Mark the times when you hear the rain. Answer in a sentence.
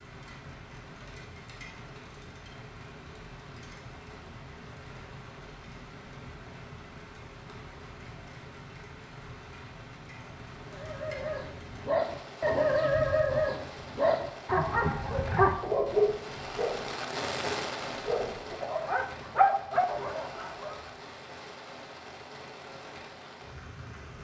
The rain can be heard from 0.0 to 24.1 s.